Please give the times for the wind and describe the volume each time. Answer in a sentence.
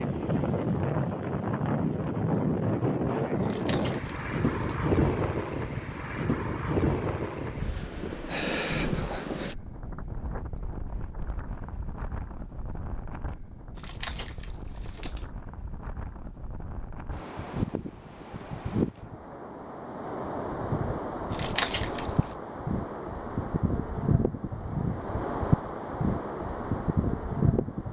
You can hear the wind from 0.0 to 27.8 s, getting quieter then louder.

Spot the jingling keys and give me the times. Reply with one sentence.
You can hear the jingling keys from 3.4 to 4.8 s, from 13.8 to 15.3 s and from 21.3 to 22.4 s.